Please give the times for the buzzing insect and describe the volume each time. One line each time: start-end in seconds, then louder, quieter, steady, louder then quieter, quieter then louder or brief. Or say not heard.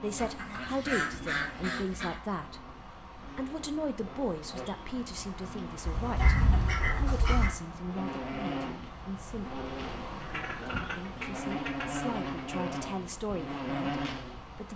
0.0-14.7 louder.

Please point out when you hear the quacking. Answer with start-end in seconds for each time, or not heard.
0.1-2.2, 5.8-7.5, 10.2-12.6.